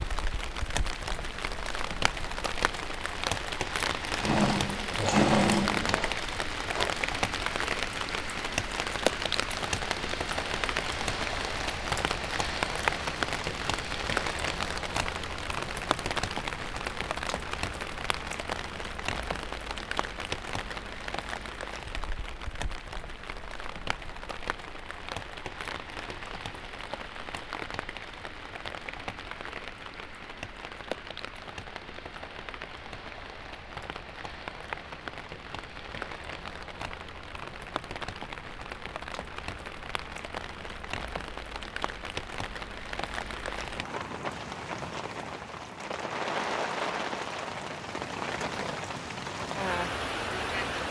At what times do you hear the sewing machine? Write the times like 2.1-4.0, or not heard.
4.2-6.9.